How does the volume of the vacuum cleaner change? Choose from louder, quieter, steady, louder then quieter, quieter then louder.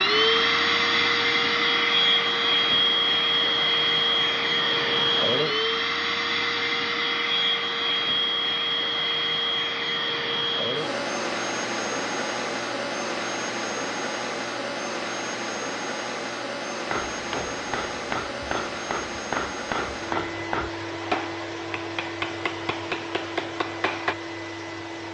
quieter.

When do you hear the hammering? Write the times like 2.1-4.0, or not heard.
16.9-24.1.